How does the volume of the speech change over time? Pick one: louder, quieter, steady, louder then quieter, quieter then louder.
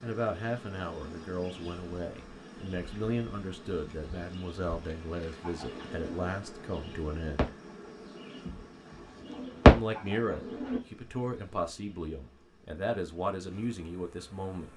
steady.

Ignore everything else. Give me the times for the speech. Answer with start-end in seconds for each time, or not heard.
0.0-7.5, 9.7-14.7.